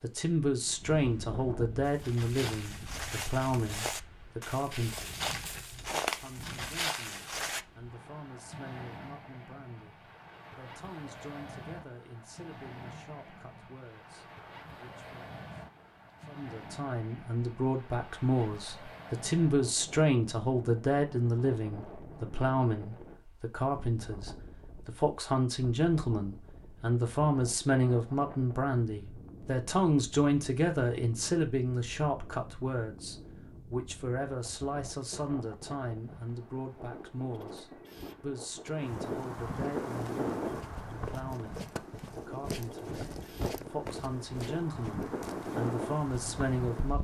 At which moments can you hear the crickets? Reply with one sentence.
The crickets can't be heard in this clip.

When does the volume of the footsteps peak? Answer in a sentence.
The loudest moment of the footsteps is at 6 seconds.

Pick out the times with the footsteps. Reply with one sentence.
The footsteps can be heard from 1.8 to 7.7 s and from 39.9 to 45.4 s.